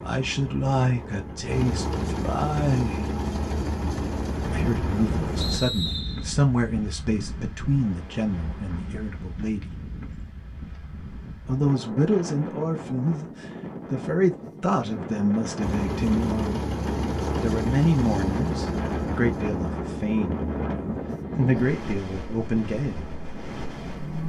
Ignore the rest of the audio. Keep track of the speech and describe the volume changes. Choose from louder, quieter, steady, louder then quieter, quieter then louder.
steady.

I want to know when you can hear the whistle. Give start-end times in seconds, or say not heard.
5.4-6.2.